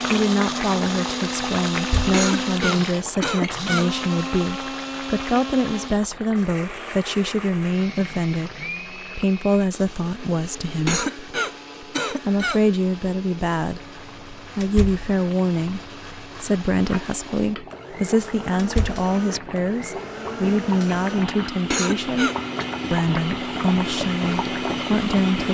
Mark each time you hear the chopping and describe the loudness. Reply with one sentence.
You can't hear the chopping here.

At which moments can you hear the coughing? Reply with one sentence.
You can hear the coughing from 1.9 to 3.9 s, from 10.7 to 12.6 s and from 21.5 to 22.4 s.